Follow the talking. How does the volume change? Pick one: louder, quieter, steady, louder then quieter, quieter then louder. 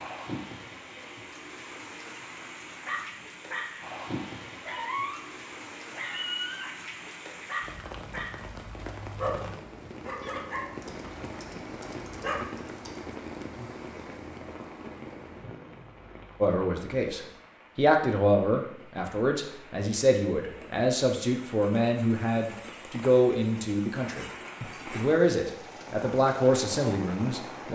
steady.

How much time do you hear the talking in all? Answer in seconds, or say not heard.
11 s.